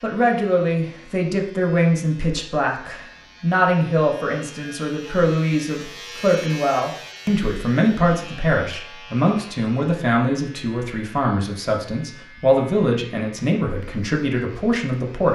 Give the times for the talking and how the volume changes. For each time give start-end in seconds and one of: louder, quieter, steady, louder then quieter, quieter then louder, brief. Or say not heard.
0.0-15.3 steady.